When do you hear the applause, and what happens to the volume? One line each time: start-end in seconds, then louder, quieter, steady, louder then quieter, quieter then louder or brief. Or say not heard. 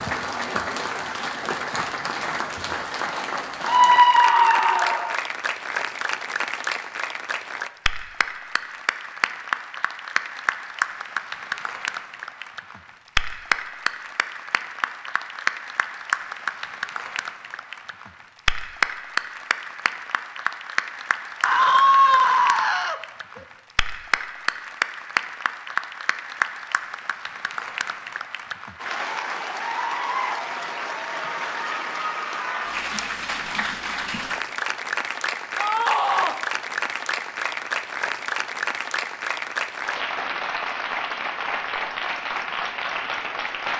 0.0-43.7 steady.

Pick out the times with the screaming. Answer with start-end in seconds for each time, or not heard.
3.6-5.2, 21.4-23.4, 35.5-36.4.